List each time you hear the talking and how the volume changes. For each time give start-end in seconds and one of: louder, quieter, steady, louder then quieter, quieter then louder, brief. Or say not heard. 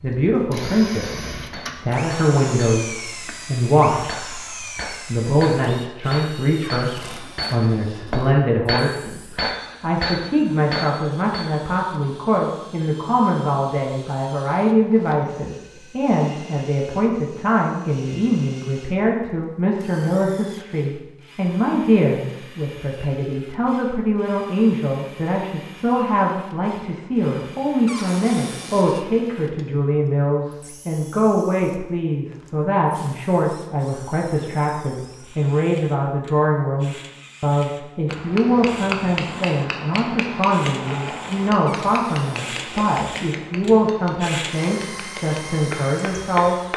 0.0-46.7 steady.